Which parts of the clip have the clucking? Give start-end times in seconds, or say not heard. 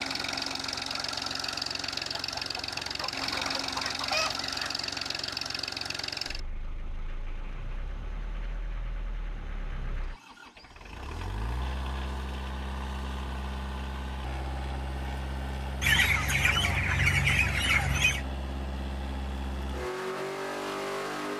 2.1-4.8, 15.8-18.2.